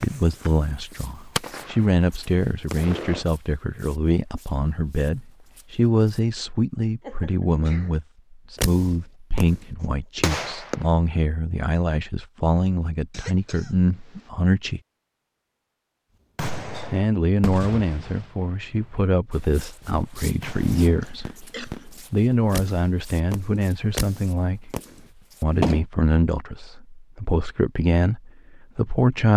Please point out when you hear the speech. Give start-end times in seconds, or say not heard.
0.0-14.8, 16.9-21.4, 22.1-24.7, 25.4-29.3.